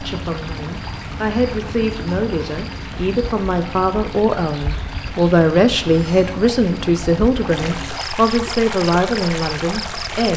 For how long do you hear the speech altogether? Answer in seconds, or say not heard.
10 s.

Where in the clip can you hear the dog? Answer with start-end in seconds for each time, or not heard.
not heard.